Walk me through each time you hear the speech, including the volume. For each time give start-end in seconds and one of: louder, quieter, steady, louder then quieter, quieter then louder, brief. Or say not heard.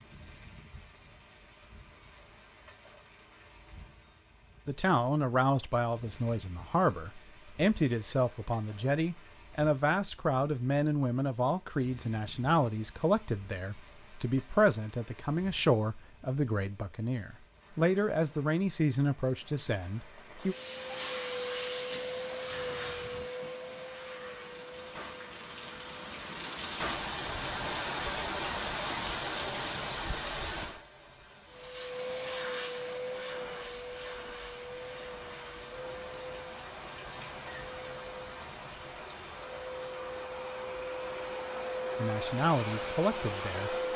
4.7-20.6 steady
42.0-43.8 brief.